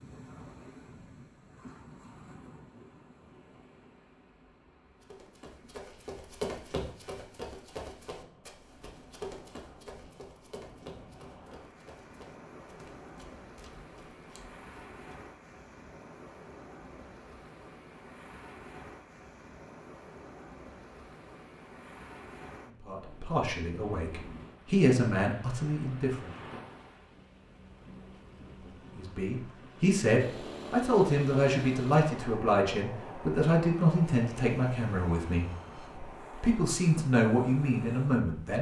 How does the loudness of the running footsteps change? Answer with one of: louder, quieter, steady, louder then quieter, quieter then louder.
quieter.